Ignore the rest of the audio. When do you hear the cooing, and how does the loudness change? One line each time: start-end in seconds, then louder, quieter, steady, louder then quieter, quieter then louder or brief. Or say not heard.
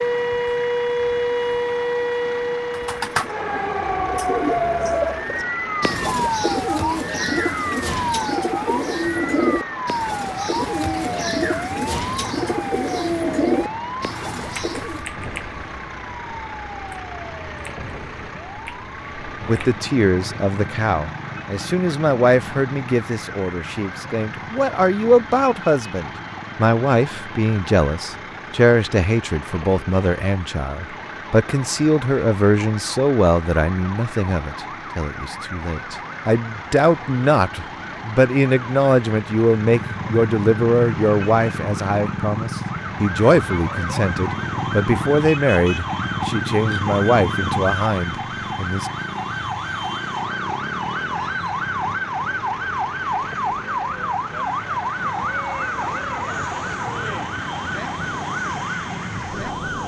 2.7-15.1 steady.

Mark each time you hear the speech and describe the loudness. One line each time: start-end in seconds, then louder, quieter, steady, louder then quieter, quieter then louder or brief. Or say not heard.
19.4-48.9 steady.